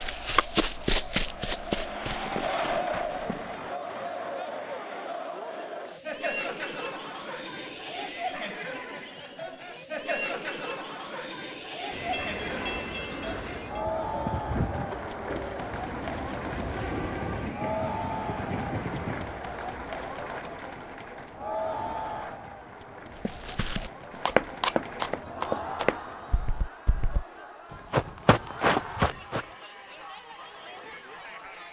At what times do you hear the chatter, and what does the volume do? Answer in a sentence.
You can hear the chatter from 0.0 to 31.6 s, getting quieter.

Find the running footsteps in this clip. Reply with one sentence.
You can hear the running footsteps from 0.0 to 3.6 s and from 23.2 to 29.4 s.